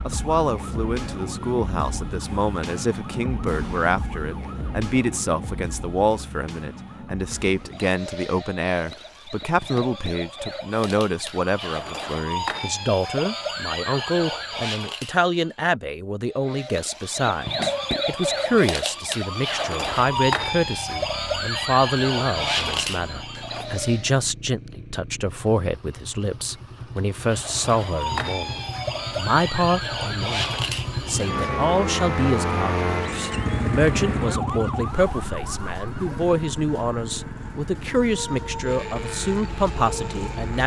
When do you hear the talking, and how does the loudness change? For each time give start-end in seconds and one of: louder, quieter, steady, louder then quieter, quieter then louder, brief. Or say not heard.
0.1-40.6 steady.